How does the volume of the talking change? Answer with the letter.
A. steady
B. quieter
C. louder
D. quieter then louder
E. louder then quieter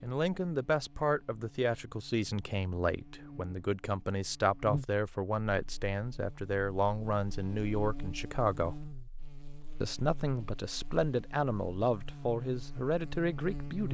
A.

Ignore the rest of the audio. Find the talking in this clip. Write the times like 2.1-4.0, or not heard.
0.0-8.8, 9.8-13.8.